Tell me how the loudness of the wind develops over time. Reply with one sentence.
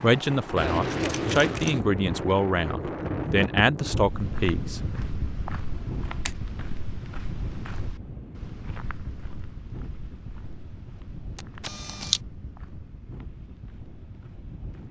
The volume of the wind goes down.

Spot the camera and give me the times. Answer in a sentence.
The camera can be heard from 1.0 to 1.9 s, from 5.7 to 6.3 s and from 11.3 to 12.2 s.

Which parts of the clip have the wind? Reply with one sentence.
The wind can be heard from 0.0 to 14.8 s.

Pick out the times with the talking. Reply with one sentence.
You can hear the talking from 0.0 to 4.8 s.